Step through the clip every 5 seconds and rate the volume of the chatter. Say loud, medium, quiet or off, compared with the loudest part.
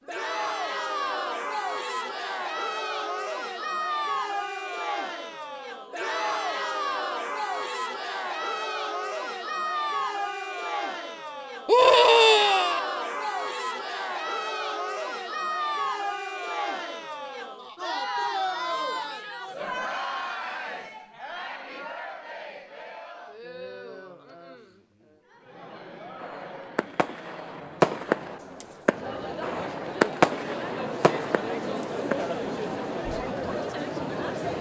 loud, loud, loud, loud, medium, medium, loud.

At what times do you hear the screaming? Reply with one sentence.
You can hear the screaming from 11.7 to 12.8 s.